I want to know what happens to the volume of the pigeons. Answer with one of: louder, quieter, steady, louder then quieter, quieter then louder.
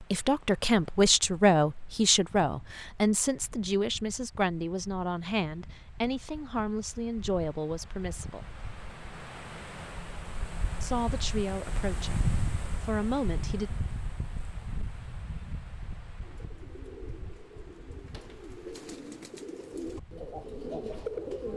louder.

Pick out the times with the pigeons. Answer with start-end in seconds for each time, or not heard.
16.2-21.5.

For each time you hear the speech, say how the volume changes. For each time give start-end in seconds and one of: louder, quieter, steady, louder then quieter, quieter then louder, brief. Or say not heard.
0.1-8.5 quieter
10.8-13.7 brief.